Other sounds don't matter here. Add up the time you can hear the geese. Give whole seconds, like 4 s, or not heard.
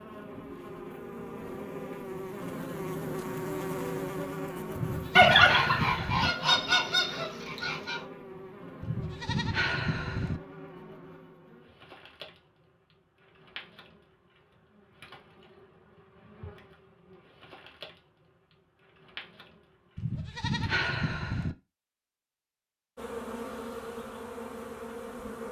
3 s.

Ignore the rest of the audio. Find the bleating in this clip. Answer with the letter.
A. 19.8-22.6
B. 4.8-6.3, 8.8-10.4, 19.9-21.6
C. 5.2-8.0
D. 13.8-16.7
B.